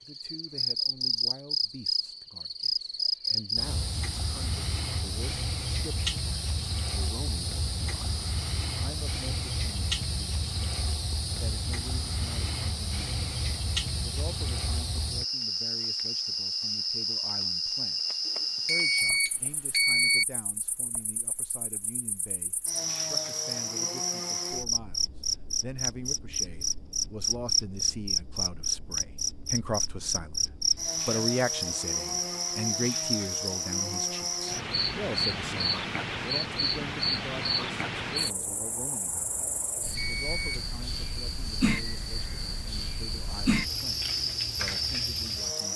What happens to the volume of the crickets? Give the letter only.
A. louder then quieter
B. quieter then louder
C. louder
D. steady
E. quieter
D.